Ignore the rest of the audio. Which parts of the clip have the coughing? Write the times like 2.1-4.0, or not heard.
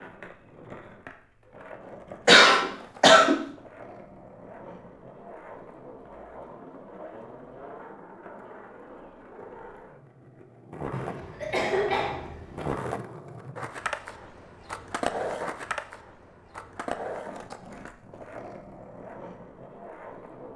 2.2-3.5, 10.9-12.7.